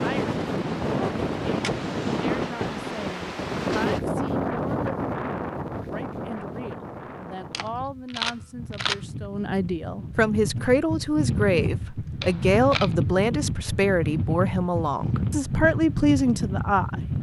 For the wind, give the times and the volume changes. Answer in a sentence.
The wind can be heard from 0.0 to 17.1 s, getting quieter then louder.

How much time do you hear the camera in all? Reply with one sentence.
You can hear the camera for 3 seconds altogether.